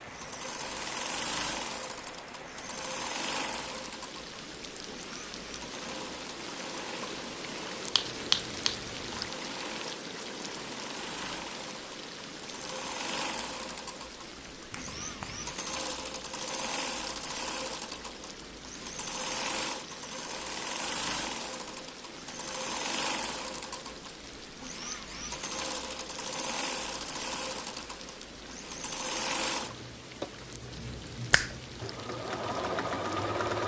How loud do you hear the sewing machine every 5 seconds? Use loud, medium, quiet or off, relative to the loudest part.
loud, medium, medium, loud, loud, loud, loud.